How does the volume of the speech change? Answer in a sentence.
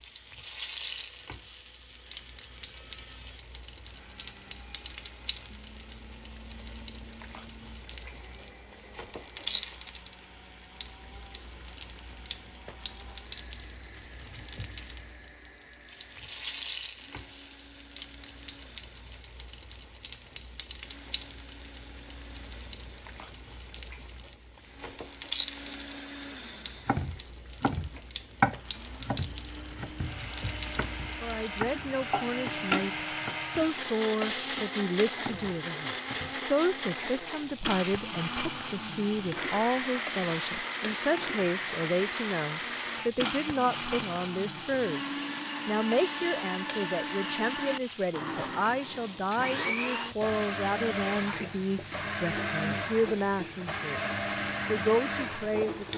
The volume of the speech stays about the same.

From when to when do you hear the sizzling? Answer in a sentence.
You can hear the sizzling from 0.0 to 55.9 s.